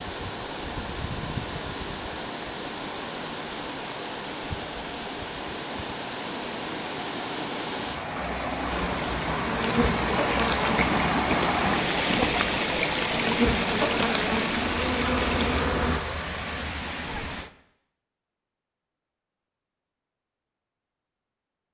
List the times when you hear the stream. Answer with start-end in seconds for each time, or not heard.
0.0-17.5.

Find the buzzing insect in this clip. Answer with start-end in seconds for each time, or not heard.
8.7-16.0.